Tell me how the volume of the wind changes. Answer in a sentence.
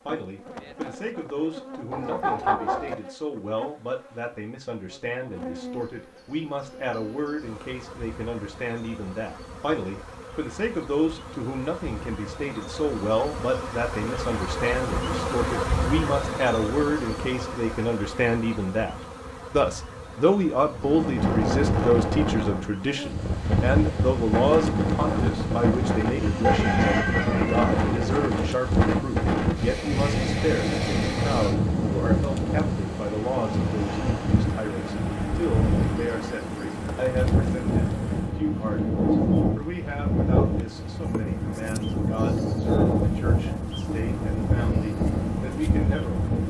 The volume of the wind stays about the same.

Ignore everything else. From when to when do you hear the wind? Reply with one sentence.
You can hear the wind from 20.8 to 46.4 s.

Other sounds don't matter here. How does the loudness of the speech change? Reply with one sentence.
The volume of the speech goes up, then down.